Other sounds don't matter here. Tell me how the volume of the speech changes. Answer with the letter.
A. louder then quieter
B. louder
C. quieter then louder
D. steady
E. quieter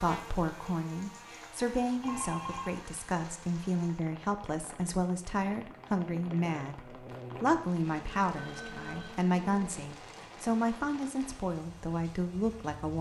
D.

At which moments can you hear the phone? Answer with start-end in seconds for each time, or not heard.
2.0-2.8, 8.3-9.2.